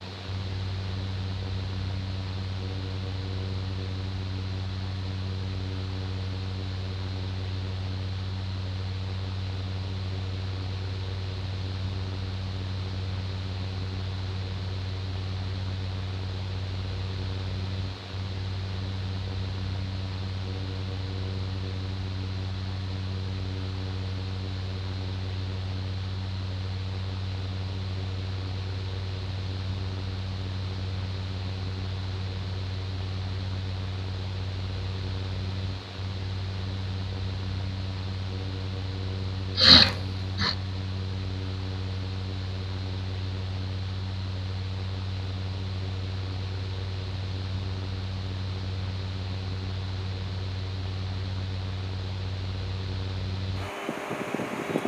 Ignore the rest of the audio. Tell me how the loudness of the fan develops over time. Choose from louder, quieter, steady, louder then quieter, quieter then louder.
steady.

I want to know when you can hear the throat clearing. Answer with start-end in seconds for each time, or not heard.
39.5-40.5.